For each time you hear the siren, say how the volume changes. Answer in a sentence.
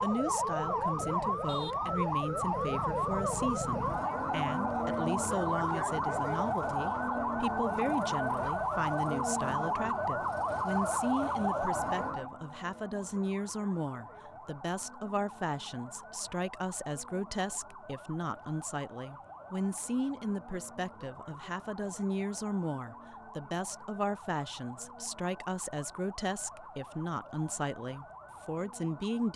The siren can be heard from 0.0 to 29.3 s, getting quieter.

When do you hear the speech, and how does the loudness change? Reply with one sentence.
You can hear the speech from 0.0 to 29.3 s, at a steady volume.